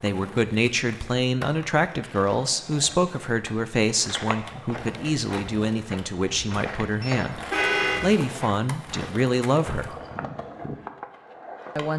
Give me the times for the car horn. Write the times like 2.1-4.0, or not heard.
7.0-8.0.